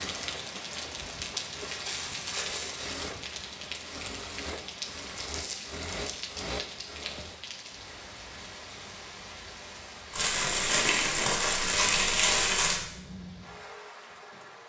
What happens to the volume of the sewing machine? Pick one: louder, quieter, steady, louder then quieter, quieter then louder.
louder.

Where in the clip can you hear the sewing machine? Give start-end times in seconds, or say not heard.
0.0-7.4.